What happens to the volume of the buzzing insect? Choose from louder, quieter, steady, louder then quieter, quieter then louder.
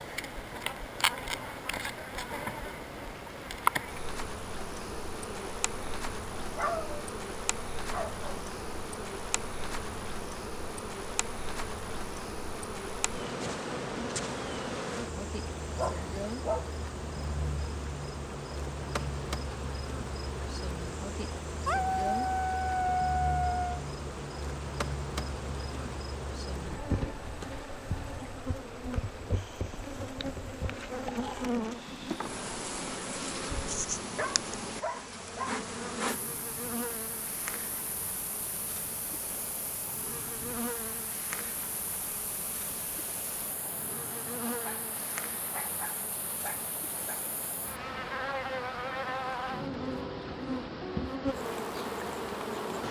steady.